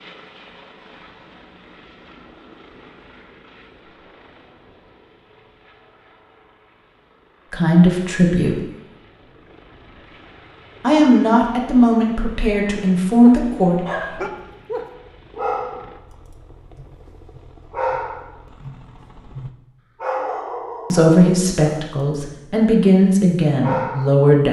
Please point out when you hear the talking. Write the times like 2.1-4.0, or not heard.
7.5-8.6, 10.8-14.2, 20.9-24.4.